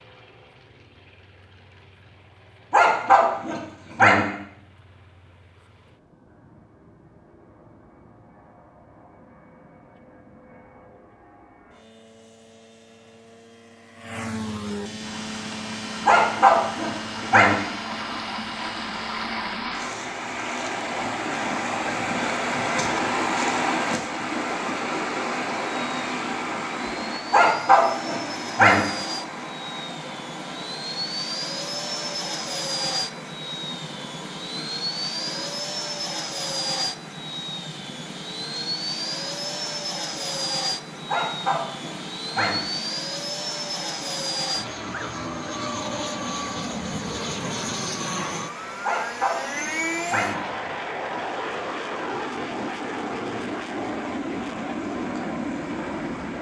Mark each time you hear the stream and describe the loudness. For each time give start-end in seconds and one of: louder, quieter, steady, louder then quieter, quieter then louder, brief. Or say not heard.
15.0-56.3 quieter.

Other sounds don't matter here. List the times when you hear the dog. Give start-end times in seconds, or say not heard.
2.7-4.2, 16.1-17.6, 27.3-28.8, 41.0-42.6, 48.8-50.4.